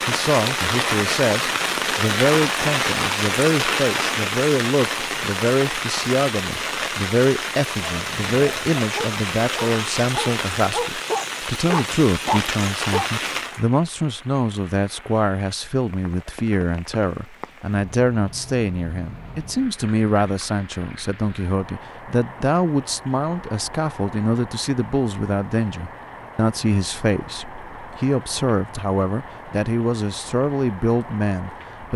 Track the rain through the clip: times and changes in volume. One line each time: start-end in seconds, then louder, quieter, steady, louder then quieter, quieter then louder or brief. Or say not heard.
0.0-31.9 quieter.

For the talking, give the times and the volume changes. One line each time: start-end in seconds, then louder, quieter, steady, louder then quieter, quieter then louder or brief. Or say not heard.
0.1-31.9 steady.